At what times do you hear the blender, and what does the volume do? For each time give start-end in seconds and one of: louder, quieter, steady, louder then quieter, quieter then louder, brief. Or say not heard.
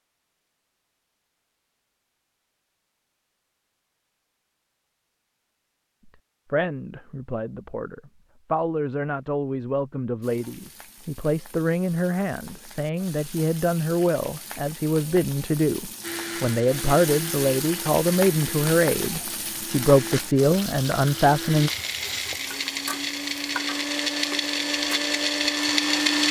16.0-26.2 louder.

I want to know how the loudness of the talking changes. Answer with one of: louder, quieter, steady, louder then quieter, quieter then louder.
louder.